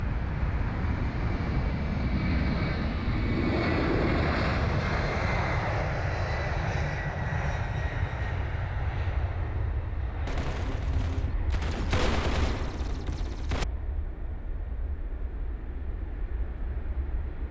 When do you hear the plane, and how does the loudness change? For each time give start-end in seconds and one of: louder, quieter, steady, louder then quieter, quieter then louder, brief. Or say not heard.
0.0-17.4 quieter.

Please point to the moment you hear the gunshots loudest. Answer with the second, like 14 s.
12 s.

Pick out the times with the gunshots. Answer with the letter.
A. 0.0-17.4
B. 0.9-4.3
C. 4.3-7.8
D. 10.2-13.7
D.